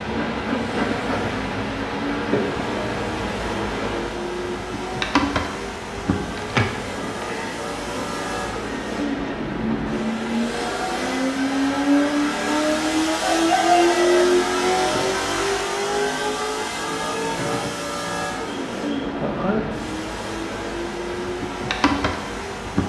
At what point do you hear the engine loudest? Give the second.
14 s.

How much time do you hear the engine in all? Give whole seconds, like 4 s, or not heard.
23 s.